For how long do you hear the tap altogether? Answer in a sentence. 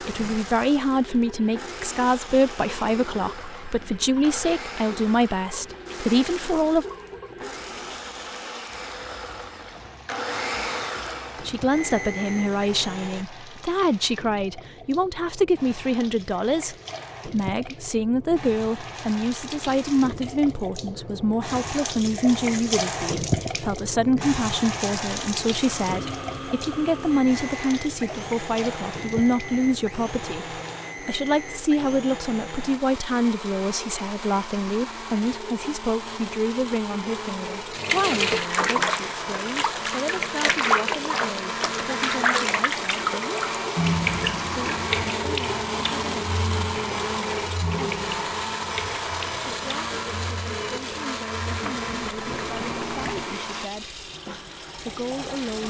You can hear the tap for 49 seconds altogether.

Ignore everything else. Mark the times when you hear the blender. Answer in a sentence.
The blender can be heard from 0.0 to 13.2 s and from 25.6 to 53.7 s.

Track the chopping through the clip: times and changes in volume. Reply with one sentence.
You can't hear the chopping here.